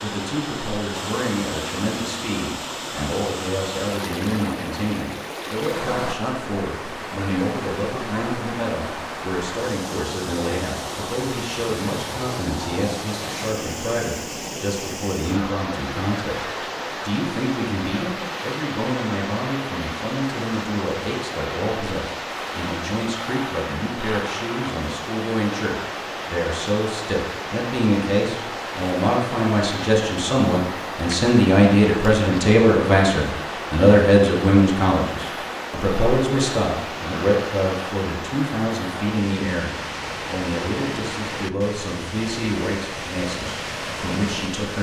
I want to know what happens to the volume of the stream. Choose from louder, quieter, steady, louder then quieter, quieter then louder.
steady.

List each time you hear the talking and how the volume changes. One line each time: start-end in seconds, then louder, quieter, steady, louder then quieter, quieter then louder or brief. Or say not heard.
0.0-44.7 louder then quieter.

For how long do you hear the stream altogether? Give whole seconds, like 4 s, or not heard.
45 s.